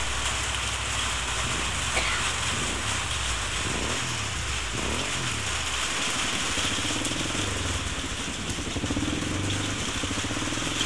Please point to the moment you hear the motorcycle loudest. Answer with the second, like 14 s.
9 s.